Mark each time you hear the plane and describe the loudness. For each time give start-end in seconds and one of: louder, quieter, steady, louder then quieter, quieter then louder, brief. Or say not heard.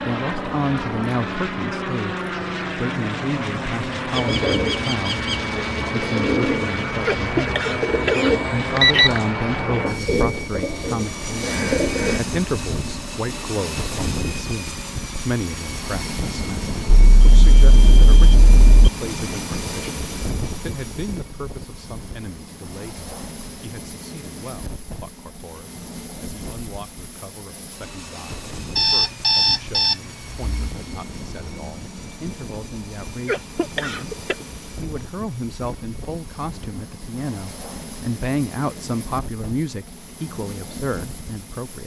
0.0-41.8 quieter.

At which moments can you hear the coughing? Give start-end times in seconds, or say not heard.
7.0-9.1, 33.2-34.4.